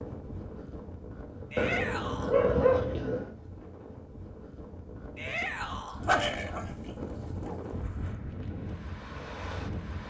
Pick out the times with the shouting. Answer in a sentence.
You can hear the shouting from 1.5 to 2.4 s and from 5.2 to 6.0 s.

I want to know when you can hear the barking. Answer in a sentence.
The barking can be heard from 1.6 to 3.3 s and from 6.0 to 8.1 s.